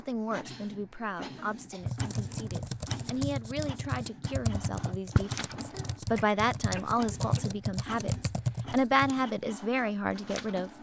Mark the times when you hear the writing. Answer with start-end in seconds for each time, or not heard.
not heard.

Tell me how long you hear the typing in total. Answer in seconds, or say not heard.
7 s.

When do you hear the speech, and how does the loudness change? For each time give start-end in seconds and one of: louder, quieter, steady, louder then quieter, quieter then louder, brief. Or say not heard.
0.0-10.7 louder.